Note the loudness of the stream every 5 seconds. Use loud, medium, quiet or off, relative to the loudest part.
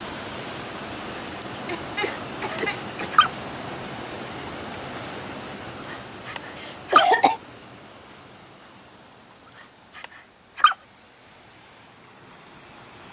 loud, medium, quiet.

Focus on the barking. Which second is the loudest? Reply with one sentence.
The loudest moment of the barking is at 7 seconds.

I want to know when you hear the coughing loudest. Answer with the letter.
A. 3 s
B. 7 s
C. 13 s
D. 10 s
B.